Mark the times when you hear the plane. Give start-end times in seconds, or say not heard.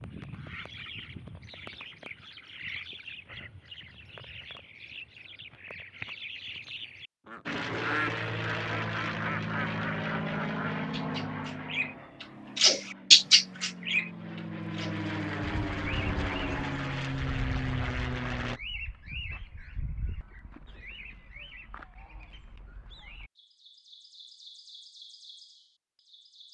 7.5-18.6.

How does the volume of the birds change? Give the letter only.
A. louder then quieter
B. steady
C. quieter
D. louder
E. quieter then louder
A.